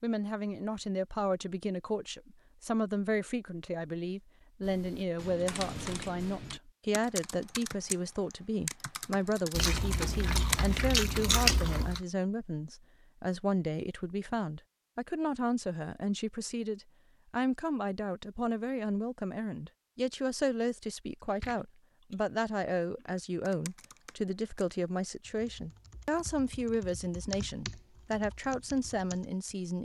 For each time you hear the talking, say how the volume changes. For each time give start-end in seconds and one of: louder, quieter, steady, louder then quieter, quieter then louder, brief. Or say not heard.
0.0-29.8 steady.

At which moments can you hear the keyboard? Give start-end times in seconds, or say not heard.
4.6-10.7, 23.4-29.4.